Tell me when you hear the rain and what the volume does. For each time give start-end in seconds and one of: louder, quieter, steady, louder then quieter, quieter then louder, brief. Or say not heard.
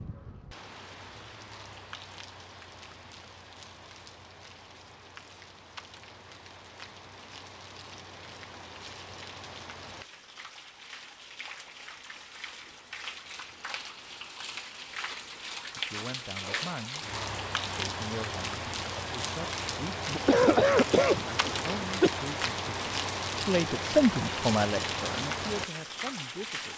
0.0-26.7 louder.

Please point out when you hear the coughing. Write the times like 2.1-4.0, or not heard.
20.1-22.1.